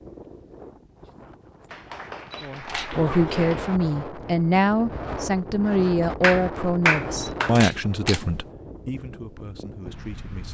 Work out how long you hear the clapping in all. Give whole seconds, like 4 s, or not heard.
3 s.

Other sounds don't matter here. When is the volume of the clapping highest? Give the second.
7 s.